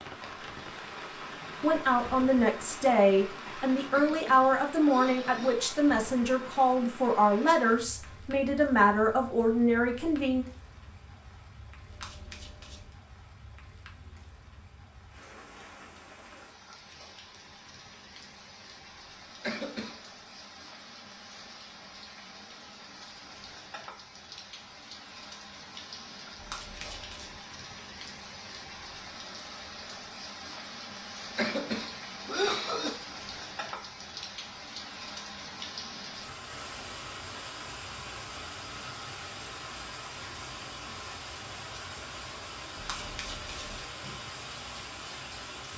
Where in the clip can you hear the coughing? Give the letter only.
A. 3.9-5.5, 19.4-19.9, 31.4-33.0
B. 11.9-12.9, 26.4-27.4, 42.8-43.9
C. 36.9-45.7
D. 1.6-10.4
A.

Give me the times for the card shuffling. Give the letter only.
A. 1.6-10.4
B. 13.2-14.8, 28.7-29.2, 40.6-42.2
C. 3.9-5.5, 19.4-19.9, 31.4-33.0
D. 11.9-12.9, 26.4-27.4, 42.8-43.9
D.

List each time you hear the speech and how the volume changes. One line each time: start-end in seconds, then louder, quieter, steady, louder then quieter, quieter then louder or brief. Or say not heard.
1.6-10.4 steady.